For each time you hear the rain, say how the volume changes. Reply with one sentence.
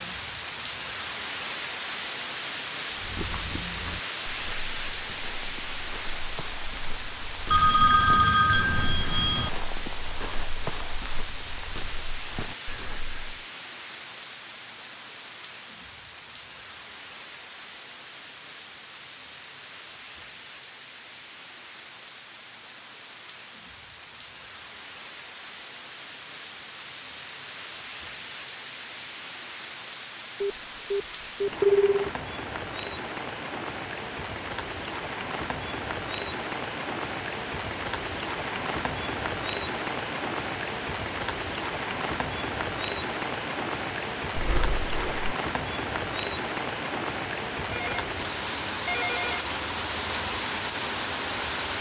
The rain can be heard from 0.0 to 51.7 s, getting quieter then louder.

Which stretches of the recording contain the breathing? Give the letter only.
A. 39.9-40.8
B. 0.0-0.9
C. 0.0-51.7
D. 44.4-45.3
D.